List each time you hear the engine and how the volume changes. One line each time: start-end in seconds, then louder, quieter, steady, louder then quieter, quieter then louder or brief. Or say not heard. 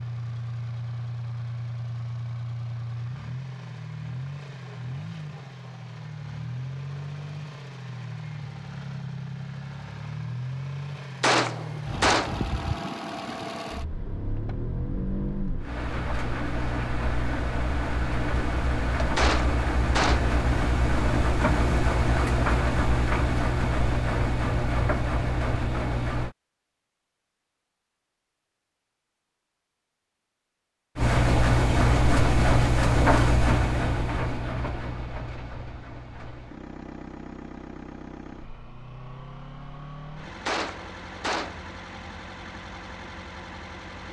0.0-26.4 louder
30.9-44.0 quieter.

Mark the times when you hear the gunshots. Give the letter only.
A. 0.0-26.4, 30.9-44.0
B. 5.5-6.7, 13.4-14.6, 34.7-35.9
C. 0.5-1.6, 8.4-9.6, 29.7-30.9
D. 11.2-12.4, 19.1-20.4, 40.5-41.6
D.